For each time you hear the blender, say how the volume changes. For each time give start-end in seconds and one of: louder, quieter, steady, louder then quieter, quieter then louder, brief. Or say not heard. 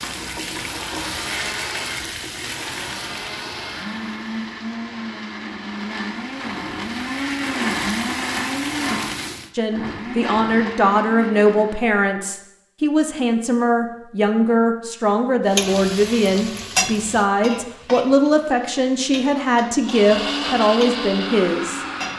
0.0-11.9 louder then quieter
19.9-22.1 brief.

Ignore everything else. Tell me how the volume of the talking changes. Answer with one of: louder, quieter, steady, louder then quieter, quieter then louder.
steady.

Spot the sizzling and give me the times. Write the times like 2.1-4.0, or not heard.
0.0-9.5, 15.5-22.1.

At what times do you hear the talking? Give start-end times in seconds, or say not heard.
9.6-21.9.